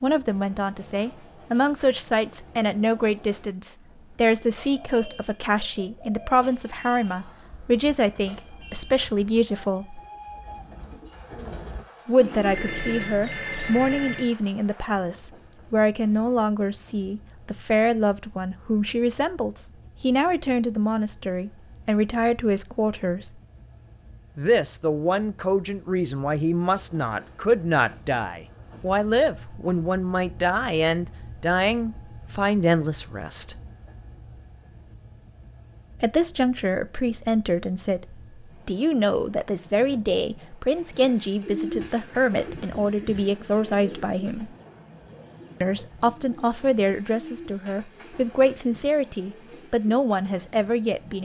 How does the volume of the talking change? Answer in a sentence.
The loudness of the talking stays about the same.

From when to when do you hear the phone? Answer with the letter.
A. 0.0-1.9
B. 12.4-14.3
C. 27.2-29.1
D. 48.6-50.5
B.